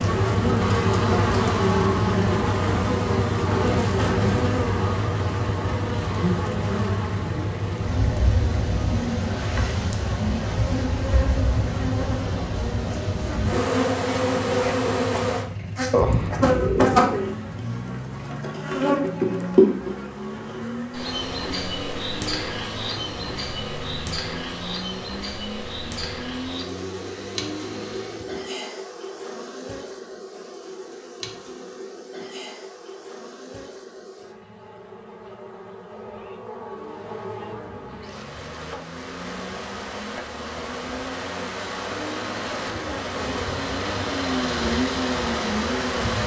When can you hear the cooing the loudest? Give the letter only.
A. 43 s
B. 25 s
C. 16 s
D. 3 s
C.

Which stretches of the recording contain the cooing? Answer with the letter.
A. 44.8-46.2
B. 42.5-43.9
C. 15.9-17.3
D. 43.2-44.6
C.